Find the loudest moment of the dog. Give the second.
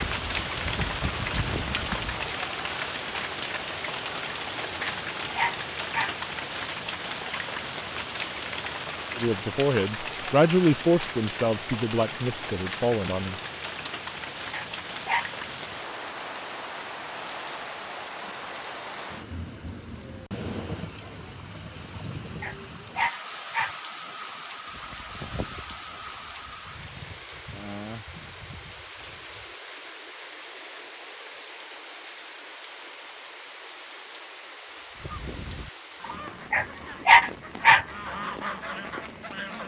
37 s.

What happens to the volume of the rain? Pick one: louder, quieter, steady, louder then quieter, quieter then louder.
quieter.